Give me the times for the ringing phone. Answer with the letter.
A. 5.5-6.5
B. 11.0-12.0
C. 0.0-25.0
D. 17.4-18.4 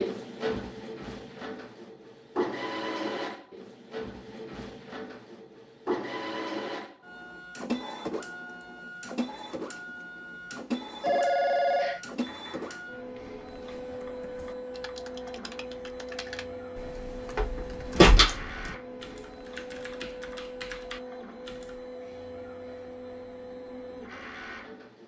B.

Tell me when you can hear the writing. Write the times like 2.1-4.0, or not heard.
not heard.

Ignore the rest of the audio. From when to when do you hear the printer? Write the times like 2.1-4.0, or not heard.
0.0-25.0.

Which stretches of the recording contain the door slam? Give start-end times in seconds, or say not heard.
17.4-18.4.